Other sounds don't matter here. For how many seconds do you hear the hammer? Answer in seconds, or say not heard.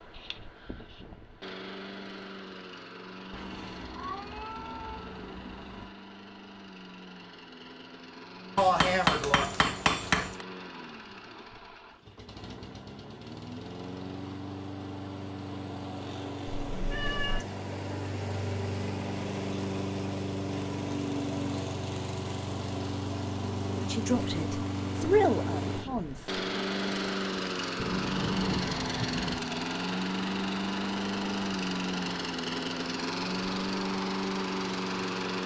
2 s.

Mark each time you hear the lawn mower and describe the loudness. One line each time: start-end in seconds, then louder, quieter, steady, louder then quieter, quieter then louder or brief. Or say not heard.
0.0-35.4 louder.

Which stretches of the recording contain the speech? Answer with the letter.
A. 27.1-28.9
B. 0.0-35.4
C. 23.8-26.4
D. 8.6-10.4
C.